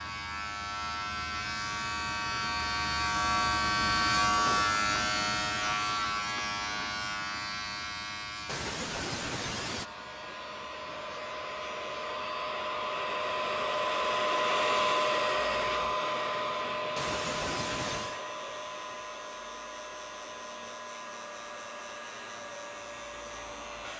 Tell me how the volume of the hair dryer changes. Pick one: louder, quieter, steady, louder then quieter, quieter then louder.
louder then quieter.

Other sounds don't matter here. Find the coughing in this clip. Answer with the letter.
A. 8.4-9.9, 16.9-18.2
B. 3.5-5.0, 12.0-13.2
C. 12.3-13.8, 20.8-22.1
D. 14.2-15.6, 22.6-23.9
A.